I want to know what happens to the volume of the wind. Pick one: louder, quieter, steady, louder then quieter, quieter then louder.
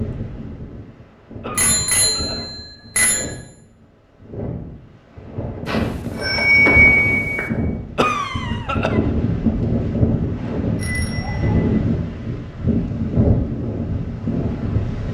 louder.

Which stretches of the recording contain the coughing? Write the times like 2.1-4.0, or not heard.
1.4-2.5, 8.0-9.0.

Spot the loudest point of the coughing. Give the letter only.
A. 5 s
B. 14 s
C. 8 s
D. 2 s
C.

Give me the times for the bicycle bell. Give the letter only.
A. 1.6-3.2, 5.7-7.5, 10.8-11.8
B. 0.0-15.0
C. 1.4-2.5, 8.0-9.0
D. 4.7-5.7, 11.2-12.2
A.